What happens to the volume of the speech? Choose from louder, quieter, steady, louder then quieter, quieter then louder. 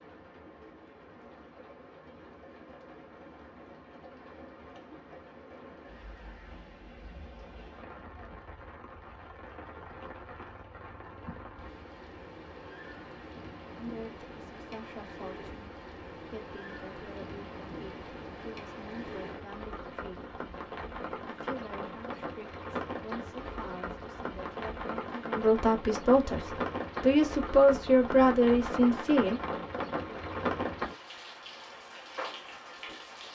louder.